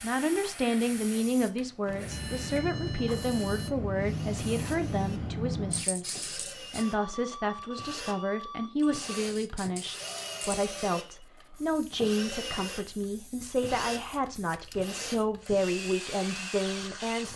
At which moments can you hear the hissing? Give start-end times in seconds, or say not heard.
0.0-6.8, 8.8-17.3.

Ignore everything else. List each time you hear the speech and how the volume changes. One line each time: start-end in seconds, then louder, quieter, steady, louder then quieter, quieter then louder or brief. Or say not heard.
0.0-17.3 steady.